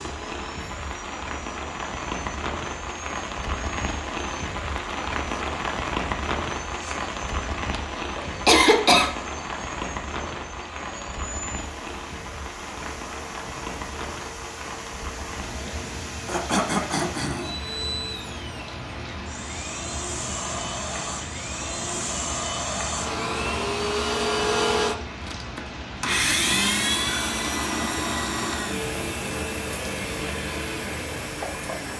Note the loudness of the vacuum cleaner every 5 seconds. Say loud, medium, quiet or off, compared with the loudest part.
quiet, quiet, quiet, medium, loud, loud, medium.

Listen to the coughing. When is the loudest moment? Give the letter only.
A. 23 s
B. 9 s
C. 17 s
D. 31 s
B.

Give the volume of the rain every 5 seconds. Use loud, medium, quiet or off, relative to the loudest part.
loud, loud, medium, medium, medium, medium, medium.